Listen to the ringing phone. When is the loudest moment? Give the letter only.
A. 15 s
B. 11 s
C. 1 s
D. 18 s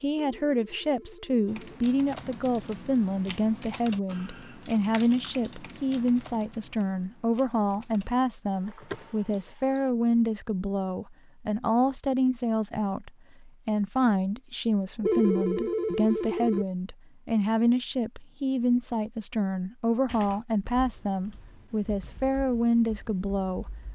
A.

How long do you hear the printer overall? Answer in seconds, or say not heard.
not heard.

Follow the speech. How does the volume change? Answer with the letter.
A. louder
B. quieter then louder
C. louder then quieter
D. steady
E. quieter
D.